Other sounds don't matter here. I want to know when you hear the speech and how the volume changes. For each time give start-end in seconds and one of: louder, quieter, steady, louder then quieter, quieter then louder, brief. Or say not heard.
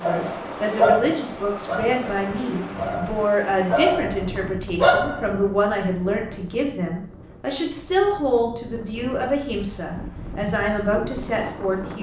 0.0-11.9 steady.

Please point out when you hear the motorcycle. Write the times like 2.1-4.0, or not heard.
not heard.